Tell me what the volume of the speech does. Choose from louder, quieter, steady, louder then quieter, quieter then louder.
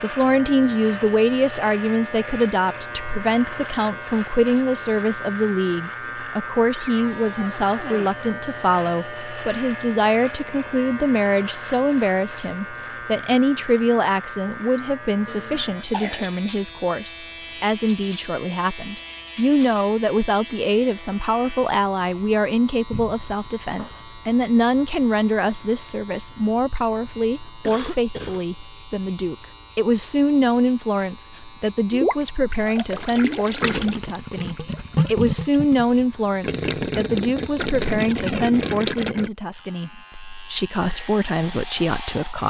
steady.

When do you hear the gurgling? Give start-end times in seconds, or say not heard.
31.9-39.3.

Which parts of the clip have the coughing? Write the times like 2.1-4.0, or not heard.
15.2-16.2, 27.6-28.4.